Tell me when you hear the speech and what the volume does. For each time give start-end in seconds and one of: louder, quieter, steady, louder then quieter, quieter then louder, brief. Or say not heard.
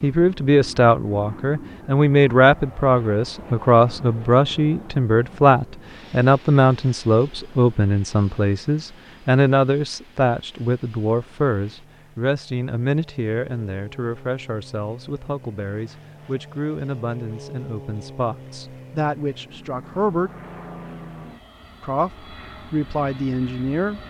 0.0-20.3 quieter
21.8-24.0 brief.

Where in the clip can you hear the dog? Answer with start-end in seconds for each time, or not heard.
not heard.